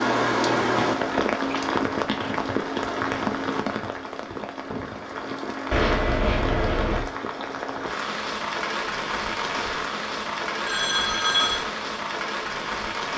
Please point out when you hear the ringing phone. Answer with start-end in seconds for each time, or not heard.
0.5-2.4, 5.7-7.0, 10.6-11.7.